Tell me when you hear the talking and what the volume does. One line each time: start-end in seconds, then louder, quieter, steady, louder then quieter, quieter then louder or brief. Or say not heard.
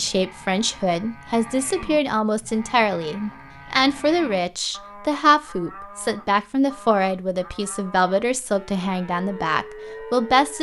0.0-10.5 steady.